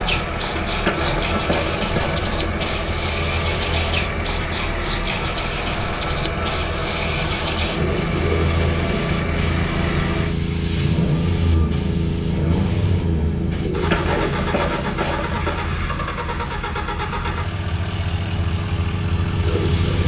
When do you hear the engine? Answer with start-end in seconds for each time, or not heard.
0.0-20.0.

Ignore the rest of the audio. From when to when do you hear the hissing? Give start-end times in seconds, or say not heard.
0.0-20.0.